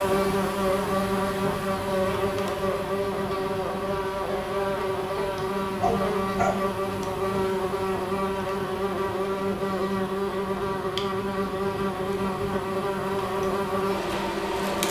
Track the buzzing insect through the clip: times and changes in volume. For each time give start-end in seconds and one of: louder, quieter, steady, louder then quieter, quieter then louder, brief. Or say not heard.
0.0-14.8 steady.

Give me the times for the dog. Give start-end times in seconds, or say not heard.
5.8-6.6.